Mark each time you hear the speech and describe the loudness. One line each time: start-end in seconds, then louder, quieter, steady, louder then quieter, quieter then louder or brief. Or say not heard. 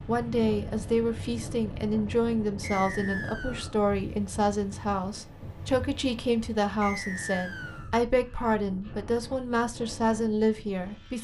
0.1-11.2 steady.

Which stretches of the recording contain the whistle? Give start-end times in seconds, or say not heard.
2.6-3.8, 6.8-8.0.